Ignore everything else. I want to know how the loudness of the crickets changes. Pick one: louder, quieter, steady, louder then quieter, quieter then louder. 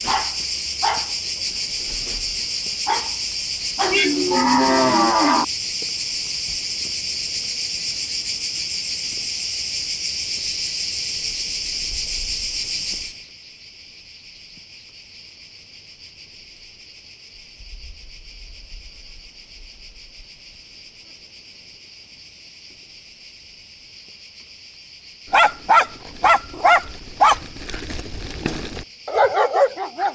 quieter.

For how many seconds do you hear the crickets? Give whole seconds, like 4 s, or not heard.
30 s.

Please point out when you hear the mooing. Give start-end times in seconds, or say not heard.
3.8-5.5.